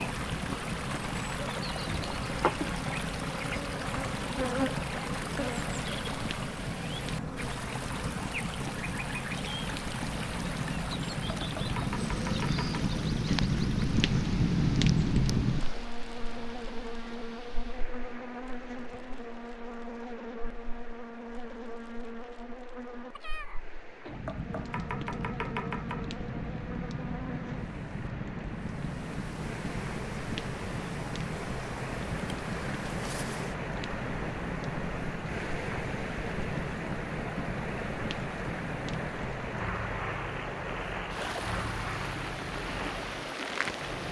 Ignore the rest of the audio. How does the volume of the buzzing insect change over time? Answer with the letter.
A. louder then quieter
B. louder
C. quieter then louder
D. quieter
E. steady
D.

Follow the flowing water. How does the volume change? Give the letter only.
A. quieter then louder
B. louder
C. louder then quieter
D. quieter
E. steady
A.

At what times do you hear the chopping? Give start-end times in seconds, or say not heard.
11.3-13.0, 24.2-26.1.